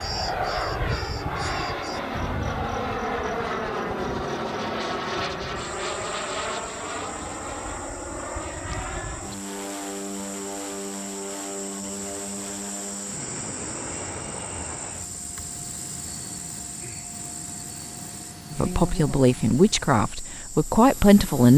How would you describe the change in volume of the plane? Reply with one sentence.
The loudness of the plane goes down.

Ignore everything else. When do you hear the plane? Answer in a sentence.
You can hear the plane from 0.0 to 21.5 s.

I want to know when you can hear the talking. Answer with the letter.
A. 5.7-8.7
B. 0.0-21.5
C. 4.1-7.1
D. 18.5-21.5
D.